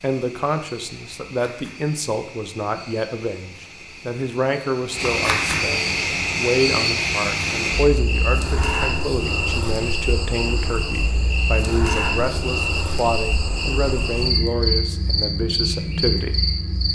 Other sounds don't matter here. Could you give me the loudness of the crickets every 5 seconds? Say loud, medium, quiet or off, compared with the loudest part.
quiet, loud, loud, loud.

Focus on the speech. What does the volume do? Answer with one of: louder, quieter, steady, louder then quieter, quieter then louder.
steady.